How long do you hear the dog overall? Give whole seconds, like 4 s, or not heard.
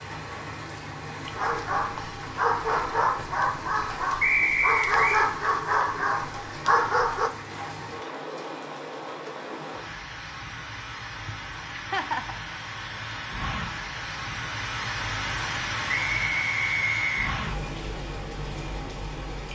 6 s.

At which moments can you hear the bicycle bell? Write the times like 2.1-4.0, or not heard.
not heard.